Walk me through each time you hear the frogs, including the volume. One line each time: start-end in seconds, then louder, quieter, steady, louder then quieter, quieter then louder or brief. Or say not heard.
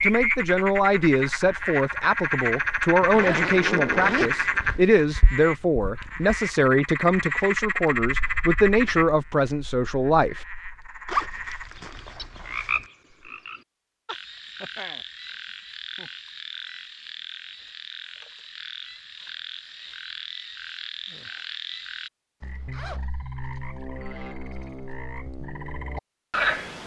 0.0-26.8 quieter.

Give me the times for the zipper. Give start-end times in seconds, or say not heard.
3.0-4.8, 11.1-12.8, 22.4-23.1.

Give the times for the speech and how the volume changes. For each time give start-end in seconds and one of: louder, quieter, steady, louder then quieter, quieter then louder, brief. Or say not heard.
0.0-10.4 steady.